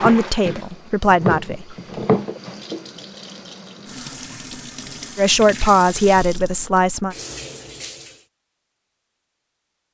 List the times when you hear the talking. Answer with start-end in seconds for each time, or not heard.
0.0-1.8, 5.2-7.2.